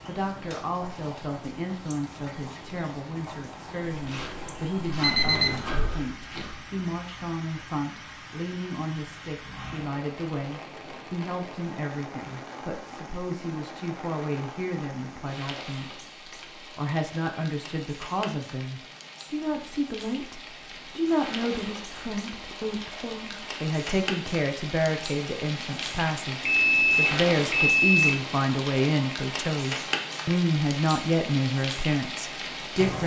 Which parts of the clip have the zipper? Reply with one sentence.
You can't hear the zipper here.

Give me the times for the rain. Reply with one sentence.
You can hear the rain from 0.0 to 33.0 s.